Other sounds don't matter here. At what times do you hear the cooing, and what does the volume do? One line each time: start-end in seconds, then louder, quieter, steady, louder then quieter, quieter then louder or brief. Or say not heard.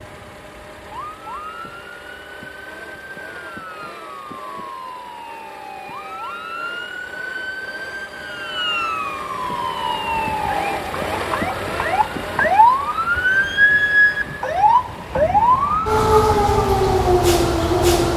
not heard.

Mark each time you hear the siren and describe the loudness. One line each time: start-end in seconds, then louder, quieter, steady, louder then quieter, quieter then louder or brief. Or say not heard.
0.0-18.1 louder.